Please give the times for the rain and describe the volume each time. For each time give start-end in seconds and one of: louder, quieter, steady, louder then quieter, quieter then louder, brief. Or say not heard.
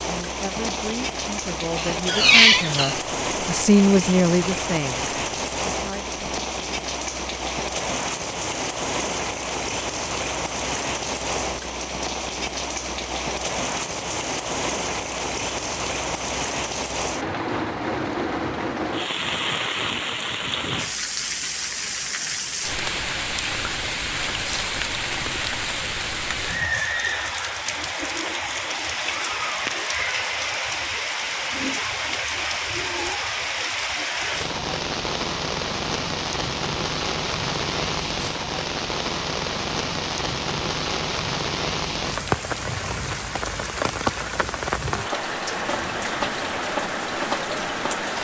0.0-48.1 steady.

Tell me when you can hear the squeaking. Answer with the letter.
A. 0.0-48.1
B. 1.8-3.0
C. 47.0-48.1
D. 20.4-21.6
B.